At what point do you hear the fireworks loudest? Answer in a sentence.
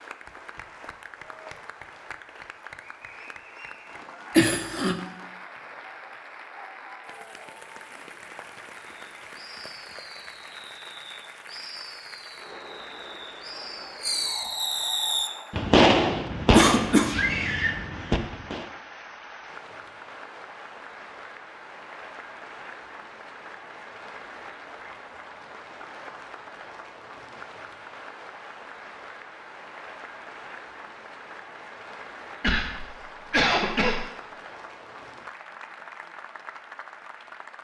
The loudest moment of the fireworks is at 16 seconds.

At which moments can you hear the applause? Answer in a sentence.
You can hear the applause from 0.0 to 37.5 s.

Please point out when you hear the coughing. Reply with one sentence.
You can hear the coughing from 4.3 to 5.0 s, from 16.5 to 17.1 s and from 32.4 to 34.0 s.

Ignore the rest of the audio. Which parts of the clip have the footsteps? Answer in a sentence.
The footsteps can't be heard in this clip.